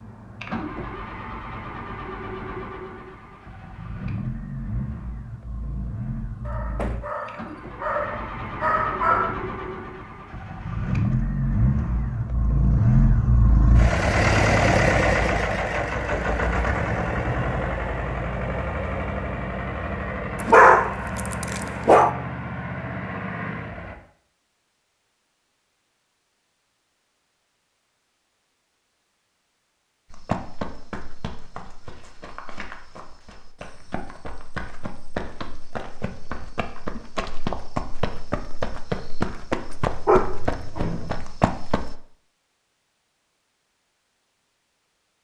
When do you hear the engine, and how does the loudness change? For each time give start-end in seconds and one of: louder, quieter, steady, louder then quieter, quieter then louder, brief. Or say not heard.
0.0-23.9 louder then quieter.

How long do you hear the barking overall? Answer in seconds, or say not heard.
6 s.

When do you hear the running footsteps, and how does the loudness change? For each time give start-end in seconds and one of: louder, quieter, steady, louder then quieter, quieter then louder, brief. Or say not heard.
30.1-42.0 louder.